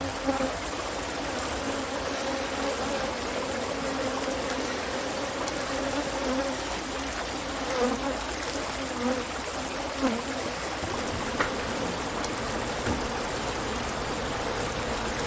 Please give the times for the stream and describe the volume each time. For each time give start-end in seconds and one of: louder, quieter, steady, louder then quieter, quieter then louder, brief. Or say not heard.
0.0-15.2 steady.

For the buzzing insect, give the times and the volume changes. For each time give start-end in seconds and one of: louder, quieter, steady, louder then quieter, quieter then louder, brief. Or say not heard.
0.0-15.2 steady.